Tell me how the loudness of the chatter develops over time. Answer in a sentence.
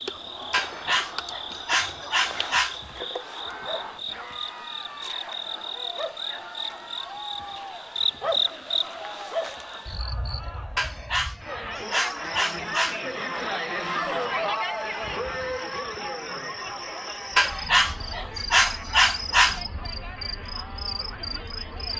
The volume of the chatter goes up, then down.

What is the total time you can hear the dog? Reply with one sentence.
You can hear the dog for 7 seconds altogether.